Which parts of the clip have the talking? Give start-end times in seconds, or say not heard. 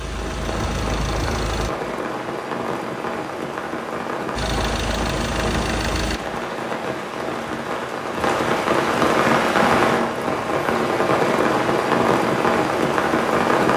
not heard.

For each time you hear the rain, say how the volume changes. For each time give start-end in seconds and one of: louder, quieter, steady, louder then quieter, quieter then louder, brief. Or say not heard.
0.0-13.7 louder.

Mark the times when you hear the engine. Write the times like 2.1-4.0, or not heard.
0.0-1.7, 4.3-6.2.